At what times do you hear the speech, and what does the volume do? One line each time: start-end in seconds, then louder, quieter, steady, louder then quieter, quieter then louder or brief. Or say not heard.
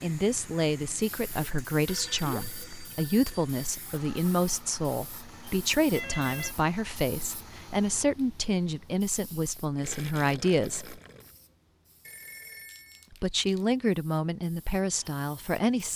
0.0-11.0 steady
13.1-15.9 brief.